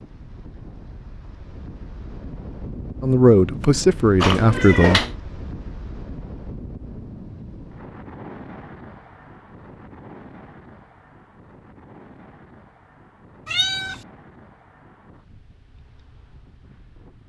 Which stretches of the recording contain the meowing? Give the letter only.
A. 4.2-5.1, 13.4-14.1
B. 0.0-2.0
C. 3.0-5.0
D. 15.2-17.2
A.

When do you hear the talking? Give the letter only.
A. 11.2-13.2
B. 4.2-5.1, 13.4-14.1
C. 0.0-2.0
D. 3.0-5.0
D.